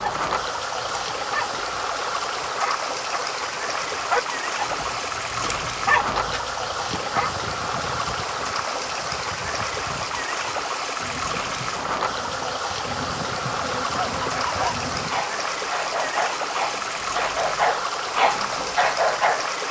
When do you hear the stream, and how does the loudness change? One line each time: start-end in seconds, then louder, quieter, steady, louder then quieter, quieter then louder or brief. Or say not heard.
0.0-19.6 steady.